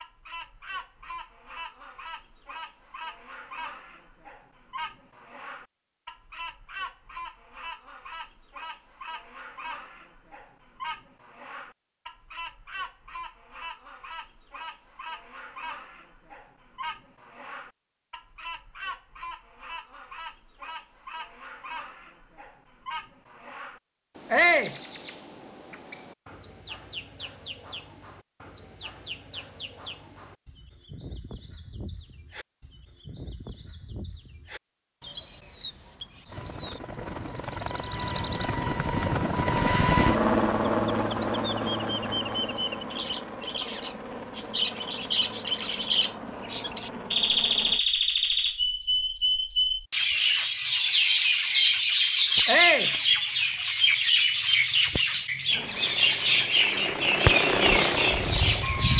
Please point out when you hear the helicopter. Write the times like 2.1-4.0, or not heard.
36.2-47.8, 55.5-58.9.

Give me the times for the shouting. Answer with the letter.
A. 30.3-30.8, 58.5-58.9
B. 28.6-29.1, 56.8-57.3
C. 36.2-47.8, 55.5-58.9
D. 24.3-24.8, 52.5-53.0
D.